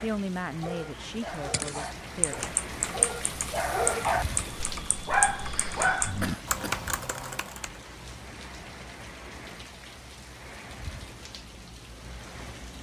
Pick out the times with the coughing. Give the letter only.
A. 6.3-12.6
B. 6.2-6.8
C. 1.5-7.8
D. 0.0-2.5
B.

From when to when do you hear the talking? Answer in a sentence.
You can hear the talking from 0.0 to 2.5 s.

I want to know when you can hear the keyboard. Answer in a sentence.
The keyboard can be heard from 1.5 to 7.8 s.